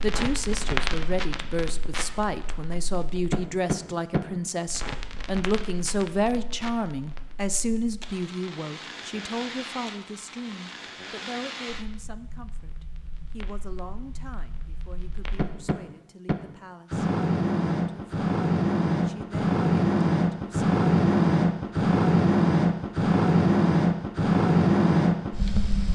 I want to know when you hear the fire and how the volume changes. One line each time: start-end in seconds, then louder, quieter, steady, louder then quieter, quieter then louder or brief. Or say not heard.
0.0-25.9 quieter then louder.